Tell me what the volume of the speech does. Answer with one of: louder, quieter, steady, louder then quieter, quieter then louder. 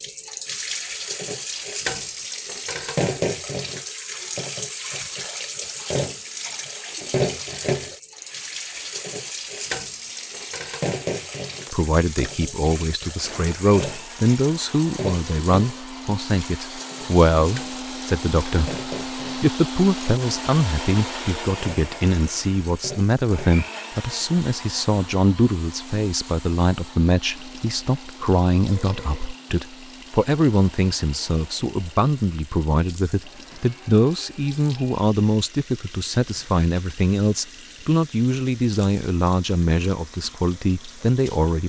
steady.